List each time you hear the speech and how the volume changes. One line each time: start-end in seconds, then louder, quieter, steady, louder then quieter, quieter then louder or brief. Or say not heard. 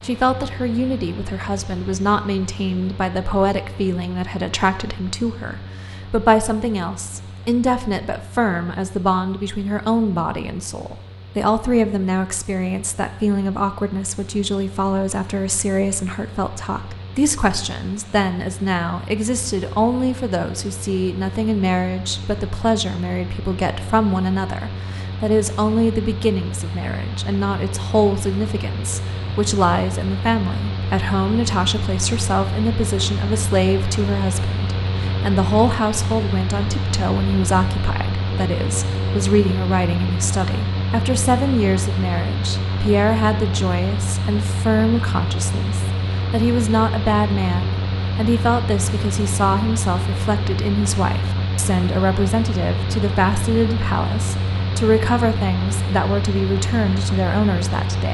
0.0-58.0 steady.